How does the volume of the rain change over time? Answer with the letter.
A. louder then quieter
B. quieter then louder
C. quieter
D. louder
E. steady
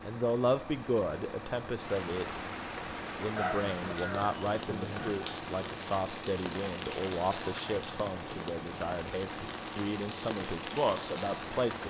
E.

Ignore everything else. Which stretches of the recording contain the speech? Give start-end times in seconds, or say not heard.
0.0-2.4, 3.2-11.8.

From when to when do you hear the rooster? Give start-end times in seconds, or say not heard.
3.4-5.3.